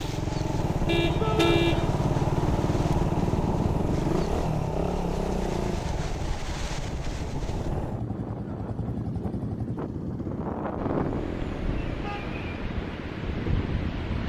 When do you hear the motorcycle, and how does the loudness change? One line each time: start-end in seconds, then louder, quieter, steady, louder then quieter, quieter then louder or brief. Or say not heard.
0.0-14.0 quieter.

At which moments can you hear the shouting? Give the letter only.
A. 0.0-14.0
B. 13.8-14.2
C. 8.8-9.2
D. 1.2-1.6
D.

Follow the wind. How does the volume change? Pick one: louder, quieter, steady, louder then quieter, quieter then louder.
louder.